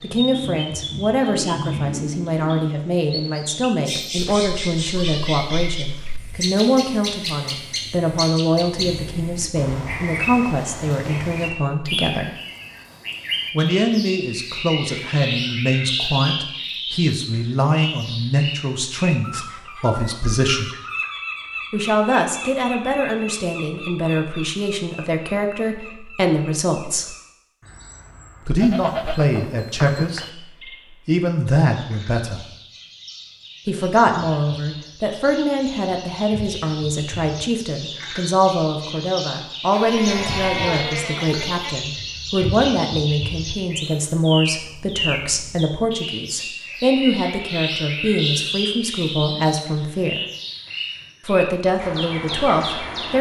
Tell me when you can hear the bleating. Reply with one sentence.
You can hear the bleating from 4.2 to 6.2 s, from 28.6 to 30.3 s and from 39.7 to 41.8 s.